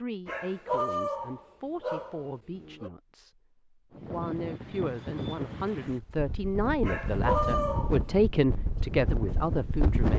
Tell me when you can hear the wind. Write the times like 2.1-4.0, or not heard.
3.9-10.1.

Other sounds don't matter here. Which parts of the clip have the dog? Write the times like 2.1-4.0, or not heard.
0.2-2.9, 6.8-8.0.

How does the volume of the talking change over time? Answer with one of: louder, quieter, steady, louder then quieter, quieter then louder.
louder.